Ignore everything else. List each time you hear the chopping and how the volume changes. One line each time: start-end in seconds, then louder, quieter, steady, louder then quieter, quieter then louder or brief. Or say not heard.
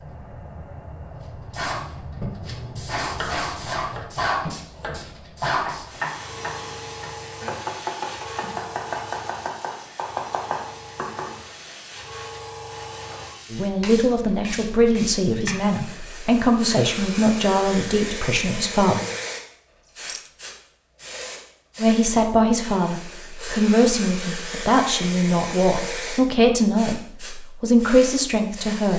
3.1-11.4 louder.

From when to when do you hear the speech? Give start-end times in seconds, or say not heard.
13.5-19.1, 21.8-28.9.